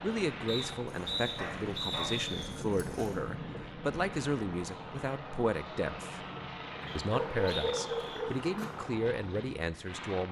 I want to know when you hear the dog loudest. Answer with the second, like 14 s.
8 s.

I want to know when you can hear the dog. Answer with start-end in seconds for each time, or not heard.
0.8-3.2, 7.0-8.7.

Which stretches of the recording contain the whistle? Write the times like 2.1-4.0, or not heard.
0.5-2.5, 6.8-8.2.